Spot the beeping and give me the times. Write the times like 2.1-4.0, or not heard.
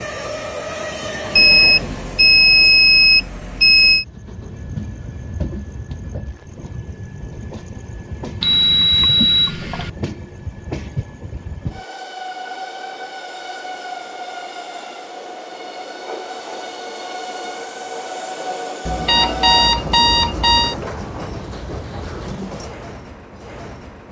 1.4-4.0, 8.4-9.9, 18.9-20.8.